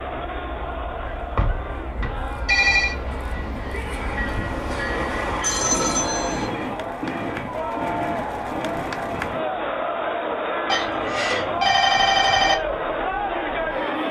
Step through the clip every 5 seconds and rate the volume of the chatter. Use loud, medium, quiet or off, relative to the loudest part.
medium, loud, loud.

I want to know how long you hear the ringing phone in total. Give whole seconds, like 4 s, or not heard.
5 s.